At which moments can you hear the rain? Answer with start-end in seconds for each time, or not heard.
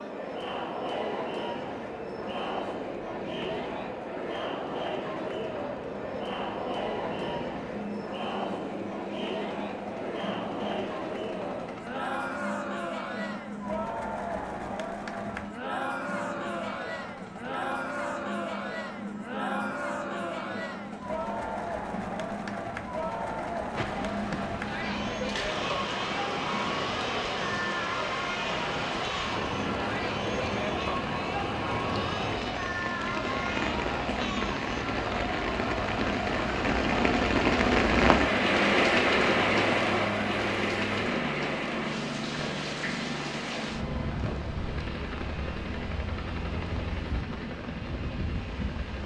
23.8-49.0.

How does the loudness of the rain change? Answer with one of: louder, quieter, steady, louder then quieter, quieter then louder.
louder then quieter.